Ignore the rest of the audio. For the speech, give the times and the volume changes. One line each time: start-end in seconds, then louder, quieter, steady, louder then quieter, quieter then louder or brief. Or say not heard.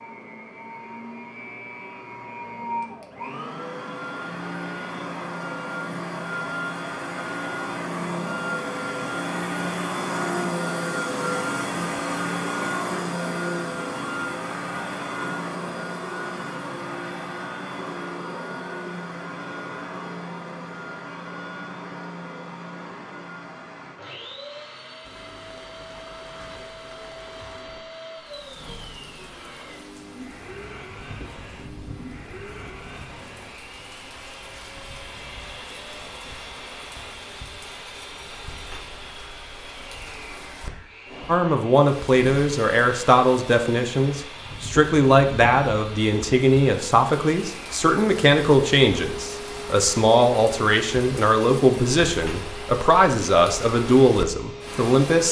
41.2-55.2 steady.